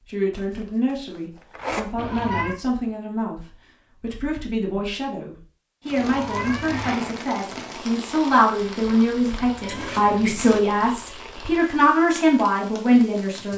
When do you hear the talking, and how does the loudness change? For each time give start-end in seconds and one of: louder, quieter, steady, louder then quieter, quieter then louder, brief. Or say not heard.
0.1-13.5 louder.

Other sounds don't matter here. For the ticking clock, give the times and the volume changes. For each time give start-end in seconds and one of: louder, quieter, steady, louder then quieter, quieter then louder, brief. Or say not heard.
not heard.